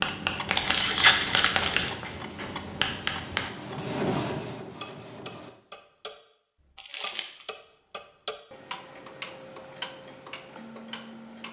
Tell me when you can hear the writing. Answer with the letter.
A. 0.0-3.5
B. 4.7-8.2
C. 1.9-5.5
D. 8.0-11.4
A.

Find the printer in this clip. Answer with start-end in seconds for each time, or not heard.
1.9-5.5.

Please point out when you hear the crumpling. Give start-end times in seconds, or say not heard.
0.5-1.9, 6.8-7.5.